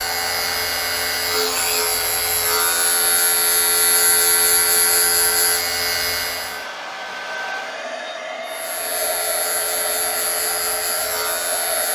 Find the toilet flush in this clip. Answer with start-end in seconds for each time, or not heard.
not heard.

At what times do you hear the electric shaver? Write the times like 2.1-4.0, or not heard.
0.0-6.7, 8.4-11.9.